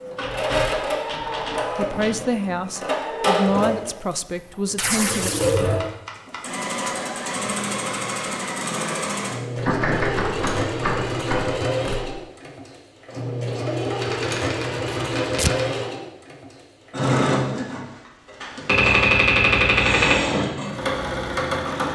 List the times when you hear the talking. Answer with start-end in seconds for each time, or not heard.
1.8-5.3.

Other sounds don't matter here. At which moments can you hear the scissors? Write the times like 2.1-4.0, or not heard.
not heard.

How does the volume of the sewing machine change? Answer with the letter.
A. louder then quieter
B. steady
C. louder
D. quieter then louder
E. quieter
B.